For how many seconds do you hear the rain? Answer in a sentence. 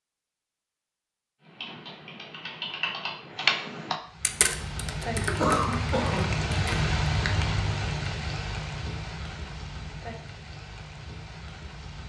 You can hear the rain for 8 seconds altogether.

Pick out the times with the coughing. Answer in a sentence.
The coughing can be heard from 5.3 to 6.5 s.